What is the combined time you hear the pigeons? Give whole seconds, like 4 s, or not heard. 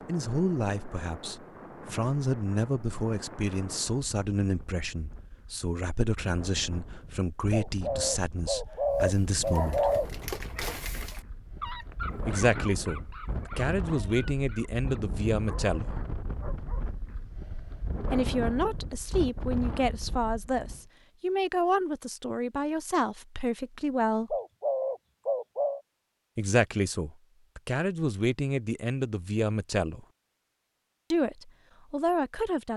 4 s.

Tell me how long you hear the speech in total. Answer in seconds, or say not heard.
25 s.